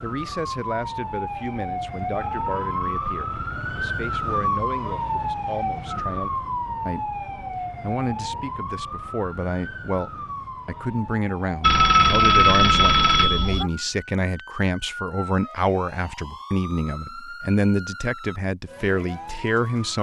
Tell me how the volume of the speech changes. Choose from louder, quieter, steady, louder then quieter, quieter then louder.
louder.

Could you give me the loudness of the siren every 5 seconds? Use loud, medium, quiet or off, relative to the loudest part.
loud, loud, medium, medium.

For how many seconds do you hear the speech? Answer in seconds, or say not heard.
20 s.